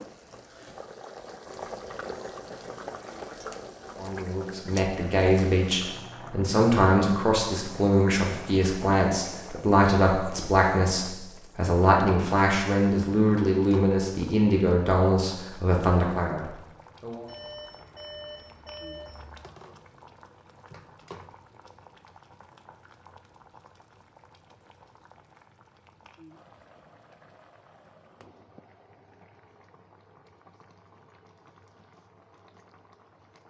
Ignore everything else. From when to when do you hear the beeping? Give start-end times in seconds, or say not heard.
17.2-19.4.